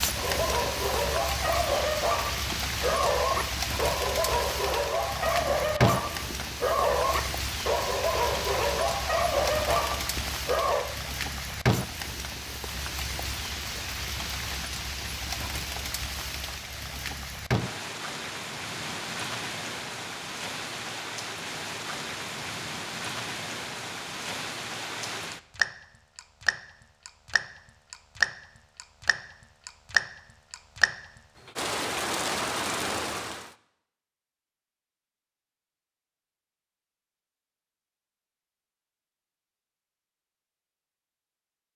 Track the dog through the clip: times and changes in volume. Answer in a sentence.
You can hear the dog from 0.1 to 10.9 s, at a steady volume.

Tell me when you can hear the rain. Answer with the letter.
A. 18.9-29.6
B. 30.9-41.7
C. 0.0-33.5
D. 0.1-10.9
C.